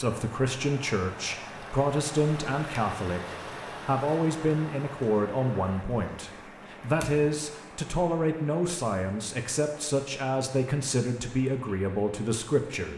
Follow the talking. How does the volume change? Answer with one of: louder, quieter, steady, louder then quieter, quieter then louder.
steady.